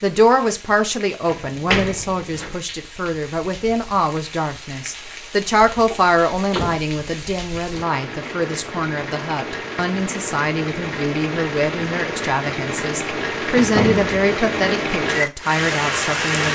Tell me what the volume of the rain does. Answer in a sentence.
The volume of the rain goes up.